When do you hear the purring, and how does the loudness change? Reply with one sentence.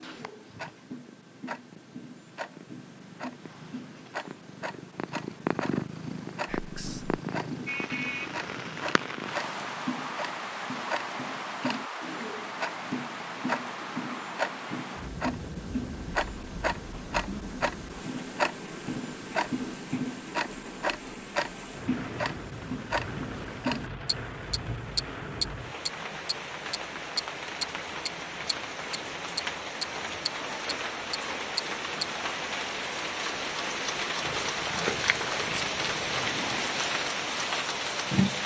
You can hear the purring from 0.0 to 9.8 s, getting louder then quieter; and briefly from 34.2 to 36.8 s.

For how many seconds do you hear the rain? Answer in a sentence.
You can hear the rain for 31 seconds altogether.